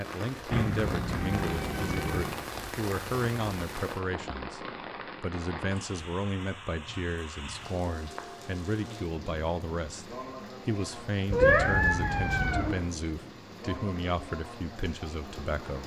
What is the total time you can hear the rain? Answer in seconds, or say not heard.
16 s.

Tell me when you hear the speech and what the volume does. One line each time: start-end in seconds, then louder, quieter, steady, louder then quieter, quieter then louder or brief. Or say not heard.
0.0-15.8 steady.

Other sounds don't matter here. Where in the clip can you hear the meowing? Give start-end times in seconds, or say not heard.
0.5-2.4, 11.3-12.8.